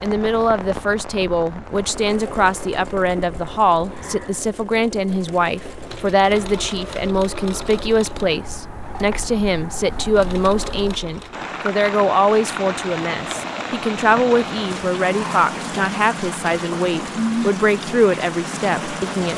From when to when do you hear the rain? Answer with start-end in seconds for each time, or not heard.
0.0-19.3.